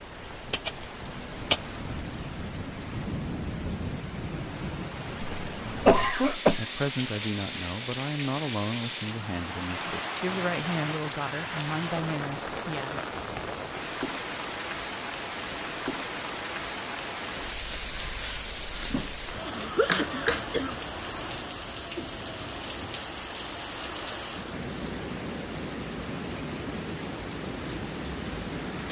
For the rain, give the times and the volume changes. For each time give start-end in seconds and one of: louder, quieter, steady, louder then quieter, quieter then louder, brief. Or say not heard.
0.0-28.8 steady.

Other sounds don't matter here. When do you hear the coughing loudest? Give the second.
6 s.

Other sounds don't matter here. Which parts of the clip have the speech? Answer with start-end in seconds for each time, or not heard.
5.5-13.1.